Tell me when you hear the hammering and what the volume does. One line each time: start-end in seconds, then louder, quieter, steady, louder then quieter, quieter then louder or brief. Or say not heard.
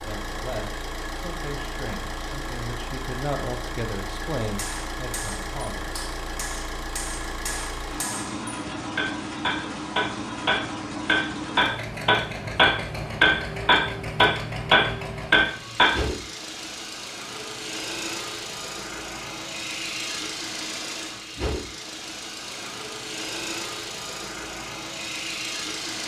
4.4-16.0 louder.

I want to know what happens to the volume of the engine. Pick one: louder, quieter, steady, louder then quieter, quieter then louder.
steady.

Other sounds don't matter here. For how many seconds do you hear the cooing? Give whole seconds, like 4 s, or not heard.
not heard.